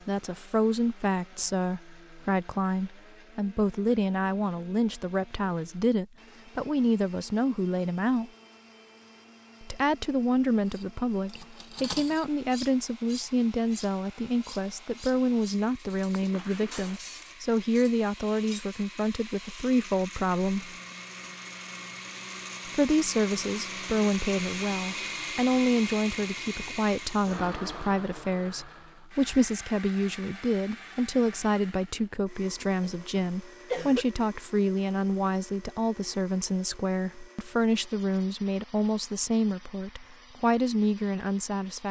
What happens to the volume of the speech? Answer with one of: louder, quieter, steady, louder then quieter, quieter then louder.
steady.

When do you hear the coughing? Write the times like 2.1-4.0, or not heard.
16.1-17.0, 32.8-34.0.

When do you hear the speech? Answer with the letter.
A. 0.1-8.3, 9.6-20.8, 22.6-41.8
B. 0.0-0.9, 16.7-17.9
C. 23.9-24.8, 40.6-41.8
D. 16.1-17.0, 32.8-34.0
A.